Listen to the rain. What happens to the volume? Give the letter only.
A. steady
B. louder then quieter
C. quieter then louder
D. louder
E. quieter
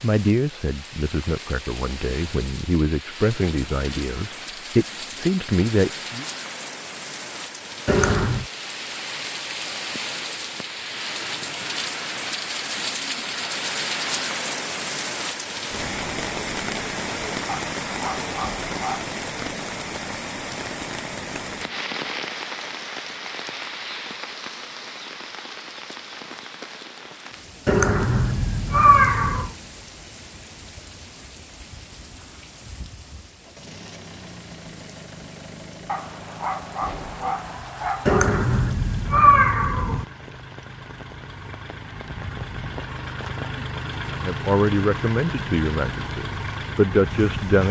B.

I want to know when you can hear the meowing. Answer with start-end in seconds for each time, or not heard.
7.8-8.4, 27.6-29.5, 38.0-40.0.